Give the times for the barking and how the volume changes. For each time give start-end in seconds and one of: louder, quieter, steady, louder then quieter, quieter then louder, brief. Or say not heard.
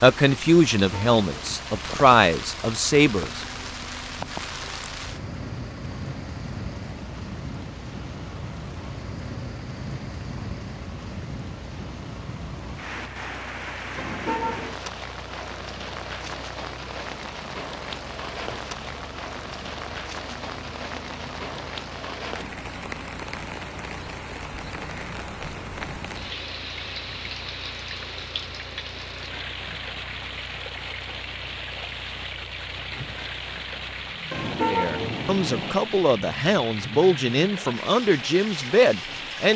not heard.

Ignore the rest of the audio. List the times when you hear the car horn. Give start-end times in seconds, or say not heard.
0.8-1.6, 13.9-14.8, 34.3-35.8.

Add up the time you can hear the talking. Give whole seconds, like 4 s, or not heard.
8 s.